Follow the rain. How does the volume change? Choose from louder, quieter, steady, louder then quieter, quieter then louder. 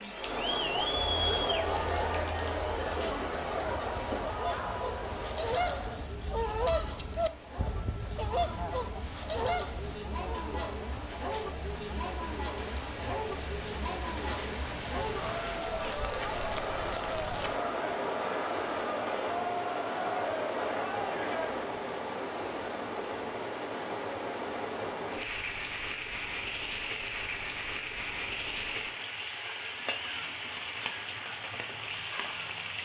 louder.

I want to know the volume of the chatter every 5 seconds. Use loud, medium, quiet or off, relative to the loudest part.
loud, medium, medium, loud, loud, off, off.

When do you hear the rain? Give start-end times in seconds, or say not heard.
0.0-32.8.